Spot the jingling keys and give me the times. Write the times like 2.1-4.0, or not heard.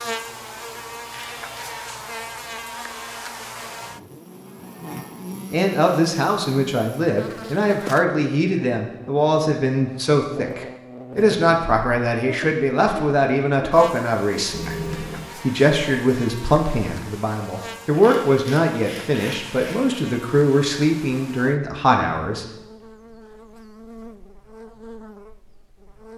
14.5-15.4.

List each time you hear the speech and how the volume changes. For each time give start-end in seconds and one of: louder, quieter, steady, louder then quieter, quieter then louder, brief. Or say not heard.
5.5-22.4 steady.